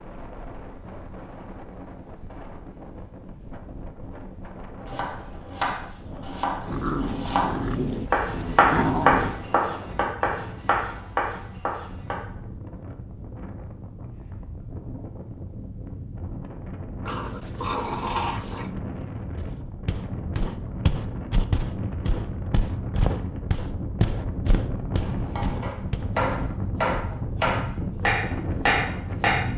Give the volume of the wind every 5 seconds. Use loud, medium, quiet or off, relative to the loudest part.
medium, medium, medium, medium, loud, loud.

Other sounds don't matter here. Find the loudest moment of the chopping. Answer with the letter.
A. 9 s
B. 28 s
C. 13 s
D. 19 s
A.